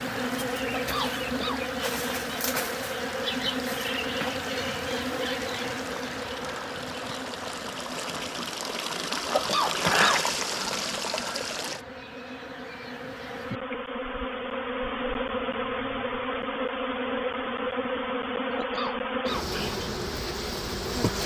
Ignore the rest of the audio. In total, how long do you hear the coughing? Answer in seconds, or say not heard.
3 s.